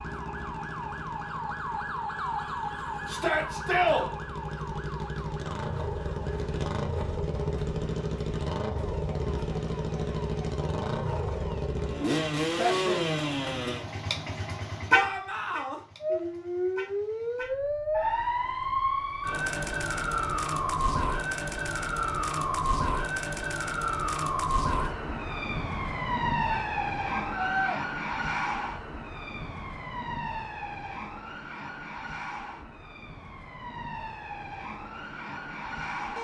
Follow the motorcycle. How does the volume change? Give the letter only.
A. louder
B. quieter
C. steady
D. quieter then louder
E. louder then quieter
E.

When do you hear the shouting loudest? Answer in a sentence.
The loudest moment of the shouting is at 4 seconds.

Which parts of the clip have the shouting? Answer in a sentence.
You can hear the shouting from 3.0 to 4.1 s, from 14.9 to 15.8 s and from 26.5 to 27.8 s.